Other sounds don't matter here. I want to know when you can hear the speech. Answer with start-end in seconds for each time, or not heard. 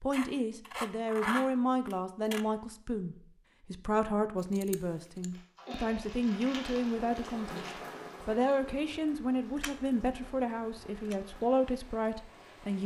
0.0-12.8.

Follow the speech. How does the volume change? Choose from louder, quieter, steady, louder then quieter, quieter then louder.
steady.